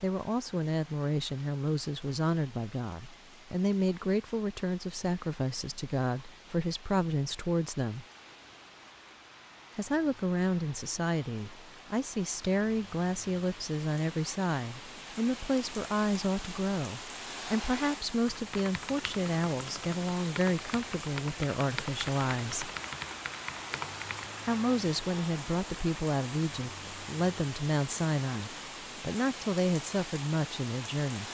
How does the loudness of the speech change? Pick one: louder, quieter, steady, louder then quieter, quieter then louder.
steady.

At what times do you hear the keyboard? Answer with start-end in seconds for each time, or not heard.
18.2-24.3.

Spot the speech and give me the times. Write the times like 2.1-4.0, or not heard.
0.0-8.1, 9.8-22.7, 24.4-31.2.